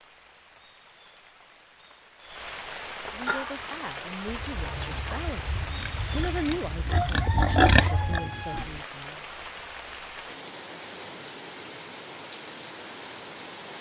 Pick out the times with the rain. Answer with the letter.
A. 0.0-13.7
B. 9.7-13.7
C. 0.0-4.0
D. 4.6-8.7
A.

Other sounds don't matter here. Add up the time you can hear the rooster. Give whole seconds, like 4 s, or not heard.
4 s.